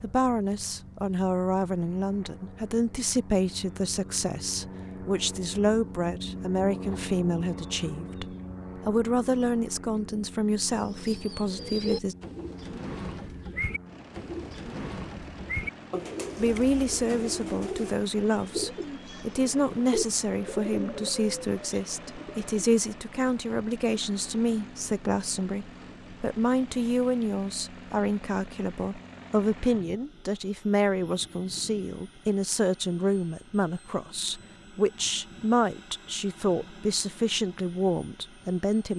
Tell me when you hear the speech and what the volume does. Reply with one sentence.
You can hear the speech from 0.0 to 12.2 s, at a steady volume; and from 16.4 to 38.9 s, at a steady volume.